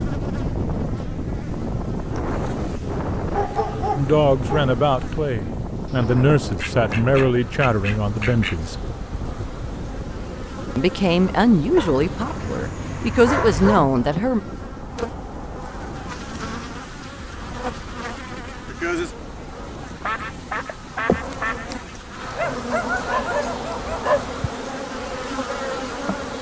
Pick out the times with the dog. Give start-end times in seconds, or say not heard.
3.3-4.8, 11.8-13.8, 22.4-24.2.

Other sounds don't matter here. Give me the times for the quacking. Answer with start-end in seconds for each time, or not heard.
5.8-8.6, 20.0-21.7.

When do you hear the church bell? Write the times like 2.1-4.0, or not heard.
not heard.